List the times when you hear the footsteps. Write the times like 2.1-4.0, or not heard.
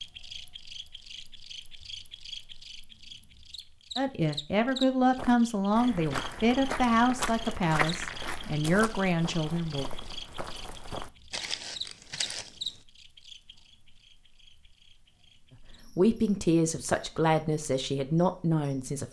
5.2-12.8.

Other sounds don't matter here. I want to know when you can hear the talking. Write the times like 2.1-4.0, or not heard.
4.0-9.8, 15.9-19.0.